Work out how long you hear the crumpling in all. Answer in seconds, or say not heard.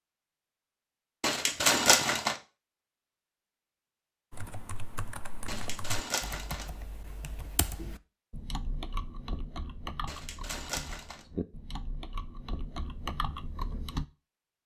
4 s.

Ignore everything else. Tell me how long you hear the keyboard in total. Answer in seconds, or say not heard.
10 s.